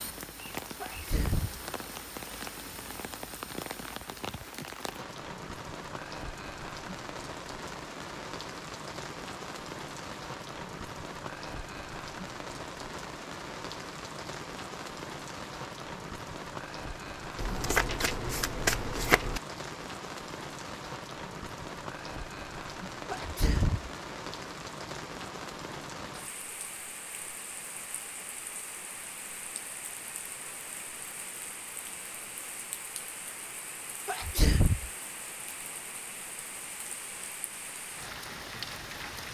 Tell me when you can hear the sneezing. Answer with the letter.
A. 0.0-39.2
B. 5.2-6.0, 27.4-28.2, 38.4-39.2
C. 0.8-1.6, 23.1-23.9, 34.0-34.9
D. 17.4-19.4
C.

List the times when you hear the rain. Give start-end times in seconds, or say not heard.
0.0-39.2.